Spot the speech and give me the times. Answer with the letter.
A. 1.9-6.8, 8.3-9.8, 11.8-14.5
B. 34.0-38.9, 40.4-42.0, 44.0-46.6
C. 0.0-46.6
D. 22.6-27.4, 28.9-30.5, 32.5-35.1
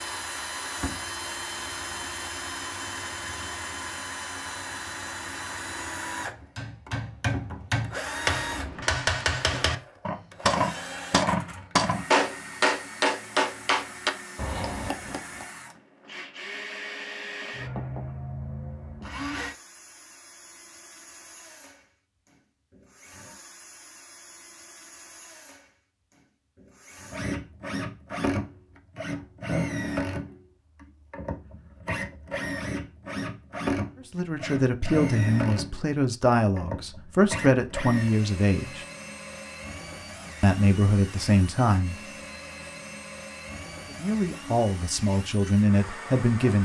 B.